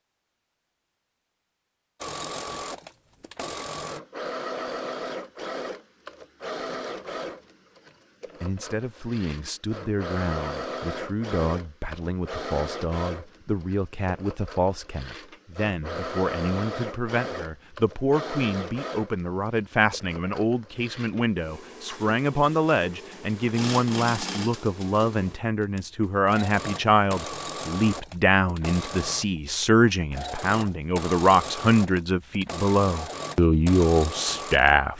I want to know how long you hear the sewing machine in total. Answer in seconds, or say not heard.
33 s.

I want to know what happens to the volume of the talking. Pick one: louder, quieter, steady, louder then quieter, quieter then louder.
louder.